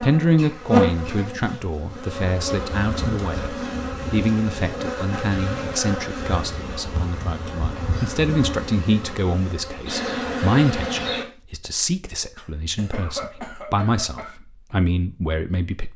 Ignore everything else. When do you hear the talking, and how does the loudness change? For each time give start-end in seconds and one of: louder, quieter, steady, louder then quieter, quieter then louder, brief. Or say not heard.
0.0-15.9 steady.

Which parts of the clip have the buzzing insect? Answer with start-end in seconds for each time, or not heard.
0.0-11.2.